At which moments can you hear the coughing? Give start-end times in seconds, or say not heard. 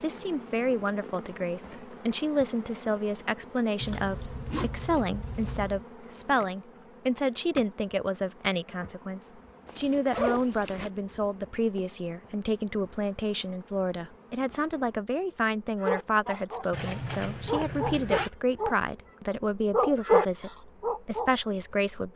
not heard.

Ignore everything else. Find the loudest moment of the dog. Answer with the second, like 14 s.
20 s.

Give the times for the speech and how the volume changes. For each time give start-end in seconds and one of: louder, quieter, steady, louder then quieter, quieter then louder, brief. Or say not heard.
0.0-22.1 steady.